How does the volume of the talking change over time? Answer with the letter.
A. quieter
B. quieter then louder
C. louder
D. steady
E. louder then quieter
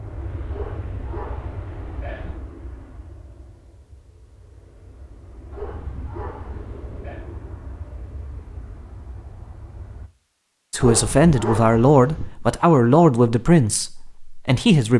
A.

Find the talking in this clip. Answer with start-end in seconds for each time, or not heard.
10.7-14.9.